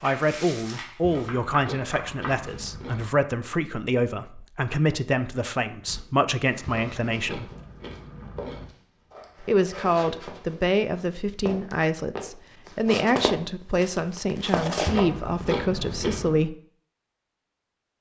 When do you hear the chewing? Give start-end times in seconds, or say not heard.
1.0-3.0, 6.7-8.7, 14.8-16.4.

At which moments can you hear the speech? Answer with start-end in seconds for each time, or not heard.
0.0-7.5, 9.4-16.6.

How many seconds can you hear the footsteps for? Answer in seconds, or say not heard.
10 s.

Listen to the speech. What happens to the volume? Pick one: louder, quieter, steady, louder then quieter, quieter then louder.
steady.